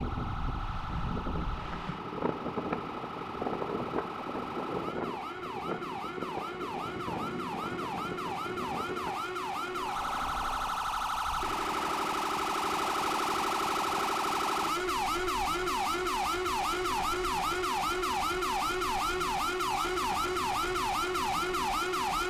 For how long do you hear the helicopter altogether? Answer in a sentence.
The helicopter can't be heard in this clip.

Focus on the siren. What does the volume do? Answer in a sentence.
The volume of the siren goes up.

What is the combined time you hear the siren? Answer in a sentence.
You can hear the siren for 22 seconds altogether.